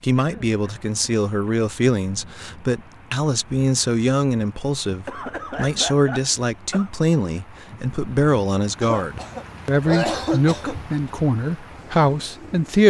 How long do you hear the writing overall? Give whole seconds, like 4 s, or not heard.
not heard.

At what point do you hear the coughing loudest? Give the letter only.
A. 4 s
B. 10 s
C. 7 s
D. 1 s
B.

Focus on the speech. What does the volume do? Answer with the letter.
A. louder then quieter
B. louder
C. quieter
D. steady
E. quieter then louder
D.